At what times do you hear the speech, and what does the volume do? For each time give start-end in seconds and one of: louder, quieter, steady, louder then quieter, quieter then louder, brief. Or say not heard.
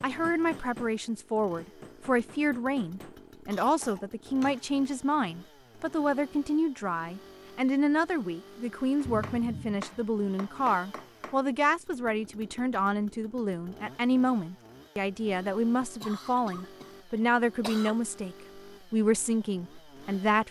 0.0-20.4 steady.